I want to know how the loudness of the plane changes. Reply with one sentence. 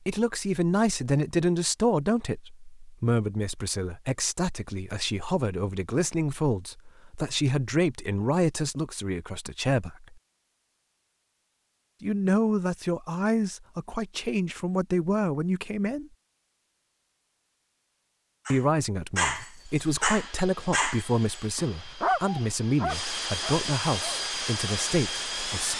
The loudness of the plane goes up.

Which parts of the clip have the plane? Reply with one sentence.
The plane can be heard from 19.6 to 25.7 s.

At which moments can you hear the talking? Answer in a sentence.
You can hear the talking from 0.1 to 10.2 s, from 12.0 to 16.1 s and from 18.5 to 25.7 s.